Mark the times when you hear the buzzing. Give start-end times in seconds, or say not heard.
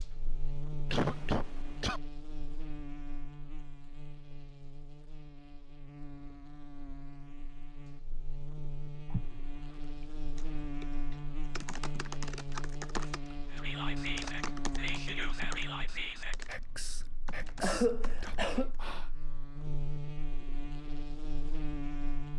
0.0-22.3.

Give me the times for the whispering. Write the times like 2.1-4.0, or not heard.
13.5-19.1.